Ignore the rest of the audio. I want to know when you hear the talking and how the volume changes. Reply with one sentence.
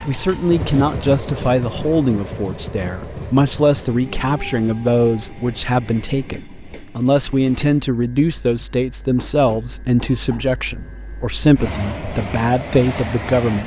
The talking can be heard from 0.1 to 13.6 s, at a steady volume.